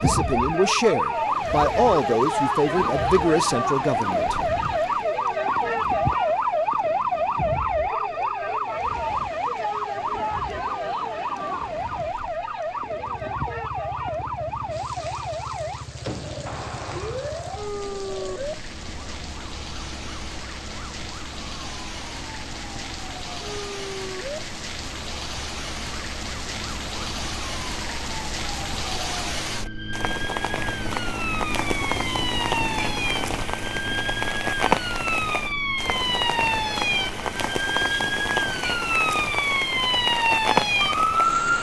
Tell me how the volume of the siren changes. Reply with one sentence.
The volume of the siren goes down, then up.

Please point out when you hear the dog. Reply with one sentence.
The dog can't be heard in this clip.